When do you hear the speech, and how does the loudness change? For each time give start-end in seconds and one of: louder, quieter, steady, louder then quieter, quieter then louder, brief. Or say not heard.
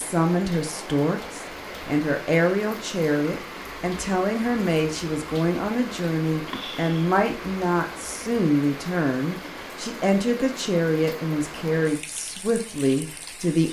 0.0-13.6 steady.